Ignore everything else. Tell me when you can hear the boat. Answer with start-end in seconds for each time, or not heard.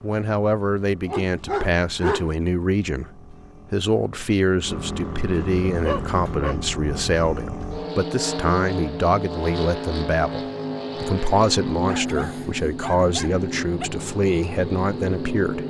0.0-15.6.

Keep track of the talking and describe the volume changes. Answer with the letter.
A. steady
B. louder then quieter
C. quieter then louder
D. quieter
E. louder
A.